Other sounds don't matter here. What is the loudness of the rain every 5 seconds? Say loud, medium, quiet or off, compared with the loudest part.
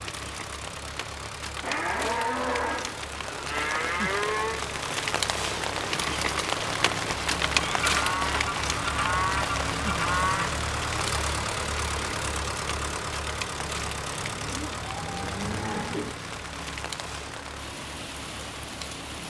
medium, loud, medium, medium.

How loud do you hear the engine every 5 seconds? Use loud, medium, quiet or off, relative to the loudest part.
medium, loud, loud, medium.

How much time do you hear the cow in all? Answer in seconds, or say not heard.
8 s.